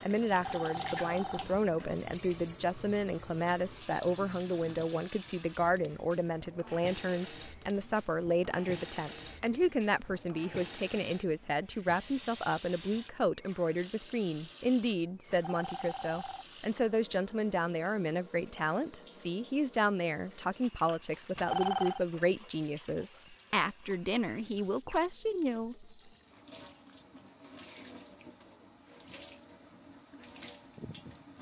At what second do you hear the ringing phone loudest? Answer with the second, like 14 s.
22 s.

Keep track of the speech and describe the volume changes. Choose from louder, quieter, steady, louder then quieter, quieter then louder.
steady.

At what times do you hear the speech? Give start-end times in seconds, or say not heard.
0.0-25.9.